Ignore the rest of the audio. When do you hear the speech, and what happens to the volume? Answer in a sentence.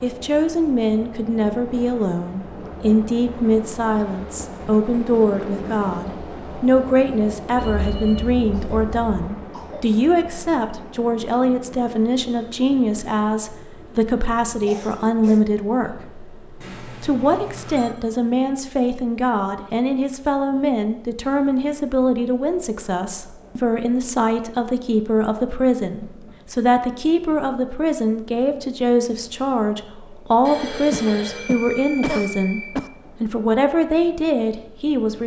The speech can be heard from 0.0 to 35.2 s, at a steady volume.